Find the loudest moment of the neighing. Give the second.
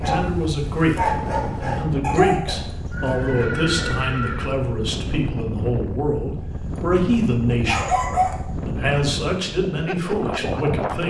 4 s.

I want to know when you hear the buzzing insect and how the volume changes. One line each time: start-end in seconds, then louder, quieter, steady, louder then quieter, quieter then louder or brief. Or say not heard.
not heard.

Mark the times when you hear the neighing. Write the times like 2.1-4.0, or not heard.
2.5-4.5.